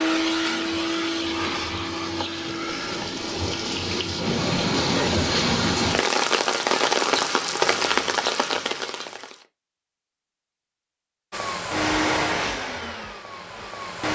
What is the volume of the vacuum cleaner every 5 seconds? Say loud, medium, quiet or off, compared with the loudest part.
loud, off, loud.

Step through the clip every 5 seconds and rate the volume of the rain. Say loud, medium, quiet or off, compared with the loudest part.
medium, loud, off.